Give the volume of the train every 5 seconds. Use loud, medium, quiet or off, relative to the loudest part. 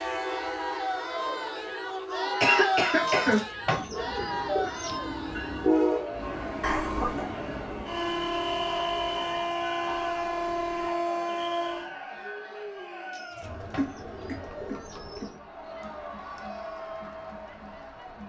medium, loud, loud, off.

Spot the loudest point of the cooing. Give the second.
4 s.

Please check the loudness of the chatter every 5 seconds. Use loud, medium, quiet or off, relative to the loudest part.
loud, medium, medium, medium.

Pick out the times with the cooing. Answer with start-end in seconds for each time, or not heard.
3.0-5.0, 13.1-15.3.